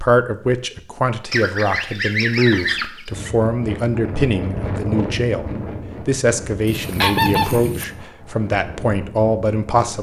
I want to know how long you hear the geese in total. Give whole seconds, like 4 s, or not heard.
3 s.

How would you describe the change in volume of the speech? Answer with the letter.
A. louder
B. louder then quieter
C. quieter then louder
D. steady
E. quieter
D.